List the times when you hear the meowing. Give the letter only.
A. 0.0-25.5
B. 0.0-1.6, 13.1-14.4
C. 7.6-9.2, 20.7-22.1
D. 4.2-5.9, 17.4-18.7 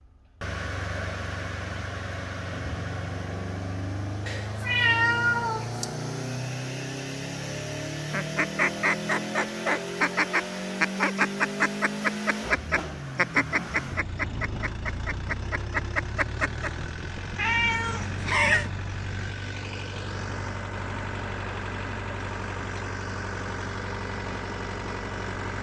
D.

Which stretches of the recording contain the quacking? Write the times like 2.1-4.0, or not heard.
8.1-16.7.